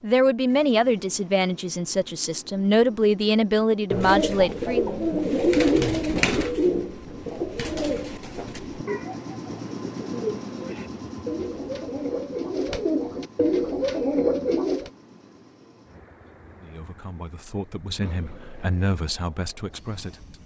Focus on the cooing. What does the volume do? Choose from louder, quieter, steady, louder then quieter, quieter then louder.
quieter then louder.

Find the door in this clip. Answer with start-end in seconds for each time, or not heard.
not heard.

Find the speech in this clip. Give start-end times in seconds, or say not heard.
0.0-5.0, 16.6-20.4.